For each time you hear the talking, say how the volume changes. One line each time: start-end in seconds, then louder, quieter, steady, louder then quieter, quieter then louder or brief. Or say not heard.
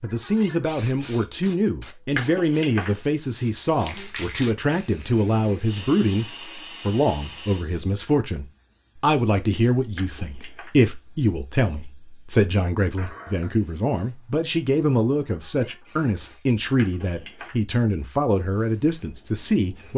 0.0-19.9 steady.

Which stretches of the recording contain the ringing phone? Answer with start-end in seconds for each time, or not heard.
2.1-2.9, 9.9-10.7, 16.8-17.6.